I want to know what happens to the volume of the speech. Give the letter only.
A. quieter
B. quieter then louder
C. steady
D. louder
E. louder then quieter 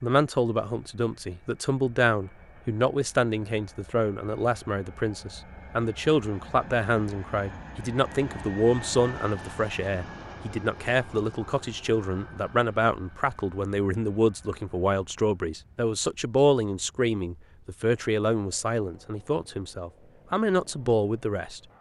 C.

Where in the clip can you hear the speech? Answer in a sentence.
You can hear the speech from 0.0 to 21.6 s.